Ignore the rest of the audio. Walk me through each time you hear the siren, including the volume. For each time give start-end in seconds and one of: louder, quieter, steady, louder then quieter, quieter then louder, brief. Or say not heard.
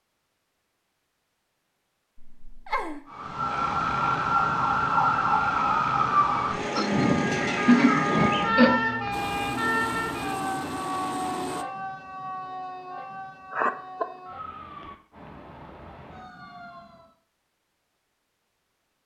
3.1-17.1 quieter.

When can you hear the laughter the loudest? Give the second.
8 s.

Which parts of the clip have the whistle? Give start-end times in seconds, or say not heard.
not heard.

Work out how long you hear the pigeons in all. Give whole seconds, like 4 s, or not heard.
not heard.